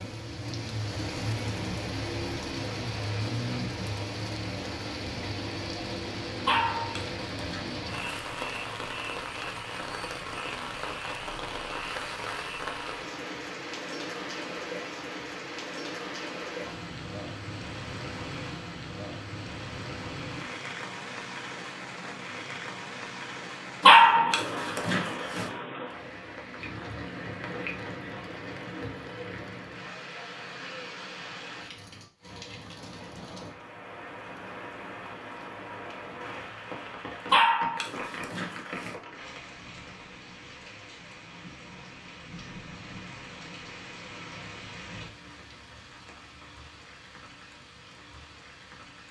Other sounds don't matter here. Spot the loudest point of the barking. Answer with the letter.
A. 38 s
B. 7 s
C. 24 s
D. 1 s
C.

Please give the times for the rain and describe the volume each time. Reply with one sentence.
You can hear the rain from 0.0 to 49.0 s, getting quieter.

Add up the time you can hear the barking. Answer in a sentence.
You can hear the barking for 5 seconds altogether.